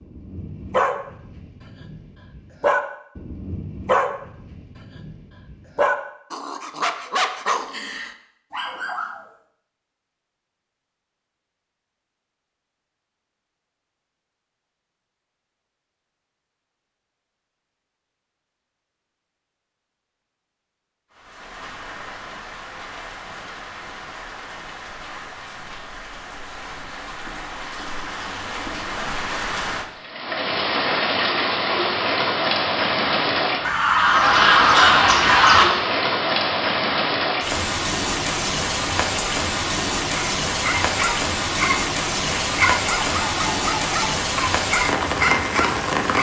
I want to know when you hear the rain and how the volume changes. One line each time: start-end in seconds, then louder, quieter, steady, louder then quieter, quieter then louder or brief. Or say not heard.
21.1-46.1 louder.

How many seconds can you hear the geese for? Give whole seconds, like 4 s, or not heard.
2 s.